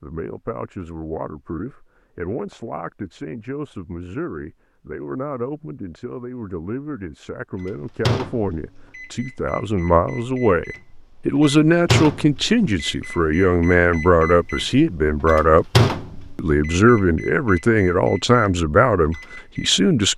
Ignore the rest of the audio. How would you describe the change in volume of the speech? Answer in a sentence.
The loudness of the speech goes up.